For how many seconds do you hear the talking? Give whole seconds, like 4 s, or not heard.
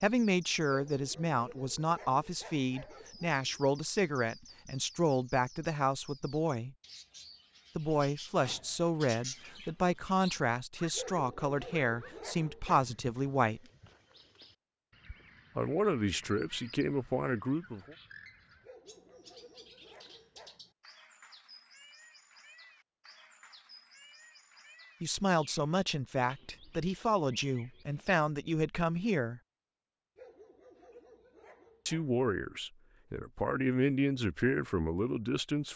23 s.